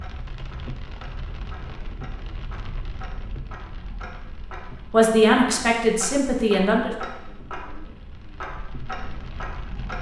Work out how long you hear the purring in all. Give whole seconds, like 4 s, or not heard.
not heard.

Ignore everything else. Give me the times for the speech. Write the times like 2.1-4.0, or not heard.
4.9-6.9.